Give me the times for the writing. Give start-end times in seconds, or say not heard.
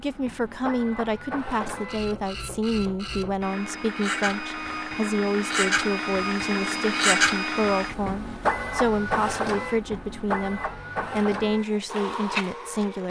not heard.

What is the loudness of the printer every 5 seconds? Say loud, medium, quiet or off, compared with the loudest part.
medium, loud, medium.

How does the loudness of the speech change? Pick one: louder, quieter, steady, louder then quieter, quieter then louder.
steady.